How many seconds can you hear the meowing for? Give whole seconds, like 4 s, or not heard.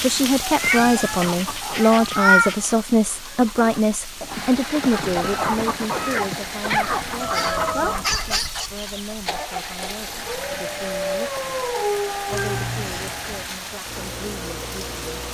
4 s.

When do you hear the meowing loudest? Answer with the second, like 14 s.
2 s.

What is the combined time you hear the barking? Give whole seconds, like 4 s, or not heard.
6 s.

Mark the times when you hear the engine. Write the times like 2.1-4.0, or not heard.
4.2-15.2.